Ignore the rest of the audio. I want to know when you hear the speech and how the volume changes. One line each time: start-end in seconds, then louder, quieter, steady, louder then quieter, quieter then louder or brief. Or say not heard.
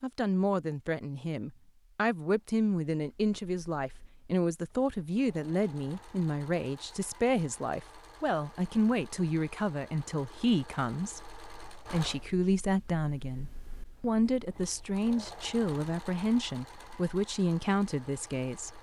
0.0-18.7 steady.